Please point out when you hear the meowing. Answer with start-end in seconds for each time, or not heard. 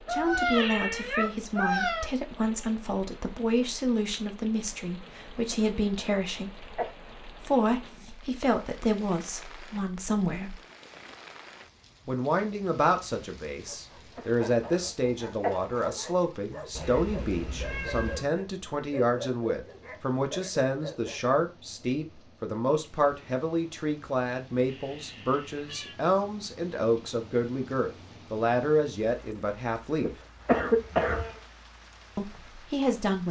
0.1-2.1, 16.8-18.2, 24.6-26.0.